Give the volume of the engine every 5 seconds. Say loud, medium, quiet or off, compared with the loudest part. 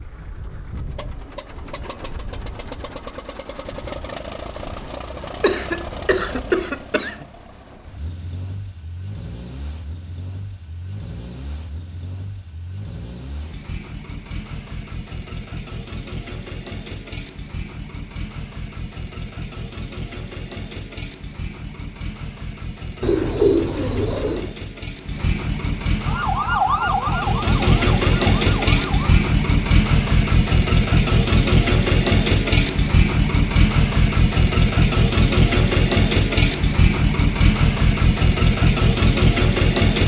quiet, quiet, quiet, quiet, quiet, loud, loud, loud.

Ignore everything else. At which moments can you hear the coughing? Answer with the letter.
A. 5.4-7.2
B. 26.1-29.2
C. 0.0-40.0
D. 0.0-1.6
A.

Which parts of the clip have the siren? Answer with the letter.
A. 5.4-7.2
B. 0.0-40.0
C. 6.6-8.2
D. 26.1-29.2
D.